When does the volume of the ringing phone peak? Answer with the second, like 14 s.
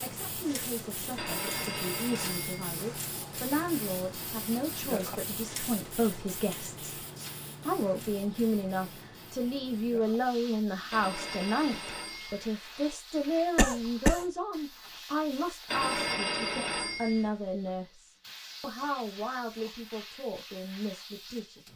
16 s.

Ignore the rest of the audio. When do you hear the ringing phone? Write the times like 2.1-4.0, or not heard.
1.1-2.6, 10.9-12.4, 15.7-17.3.